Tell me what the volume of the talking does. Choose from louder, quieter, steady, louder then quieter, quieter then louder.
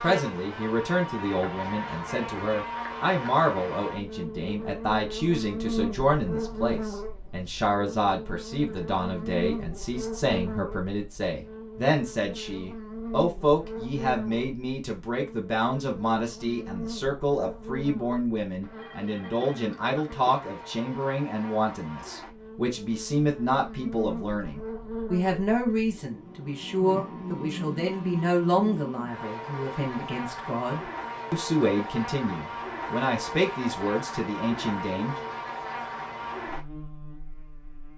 steady.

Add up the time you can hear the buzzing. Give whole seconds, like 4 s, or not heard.
38 s.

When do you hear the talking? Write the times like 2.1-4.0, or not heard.
0.0-35.1.